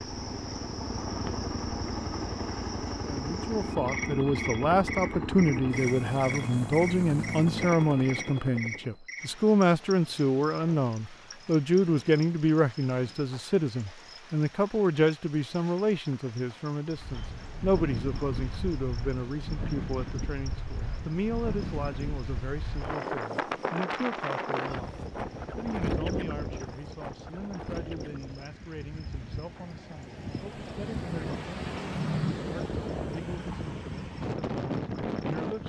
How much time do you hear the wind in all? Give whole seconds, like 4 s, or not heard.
19 s.